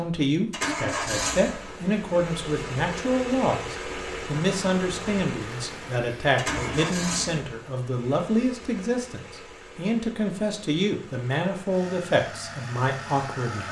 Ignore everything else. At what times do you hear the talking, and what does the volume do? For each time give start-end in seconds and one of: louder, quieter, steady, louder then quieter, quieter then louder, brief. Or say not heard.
0.0-13.6 steady.